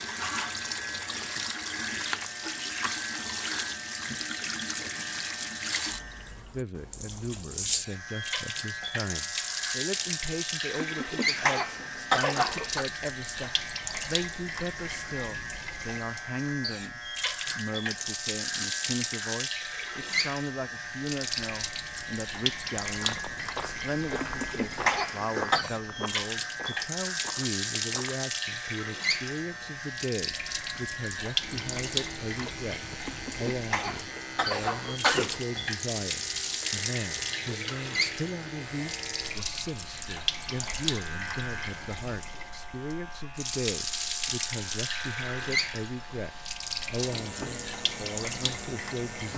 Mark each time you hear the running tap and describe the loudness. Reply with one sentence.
The running tap can be heard from 0.0 to 49.3 s, at a steady volume.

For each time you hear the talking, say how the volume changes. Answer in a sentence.
You can hear the talking from 6.5 to 49.3 s, at a steady volume.